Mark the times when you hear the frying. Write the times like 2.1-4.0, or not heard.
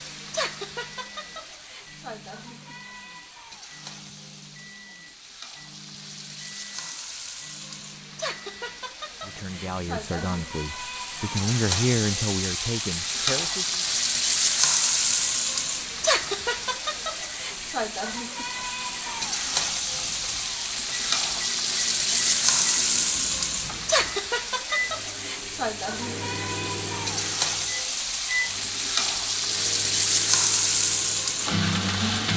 0.0-32.3.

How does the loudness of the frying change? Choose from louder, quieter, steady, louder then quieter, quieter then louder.
louder.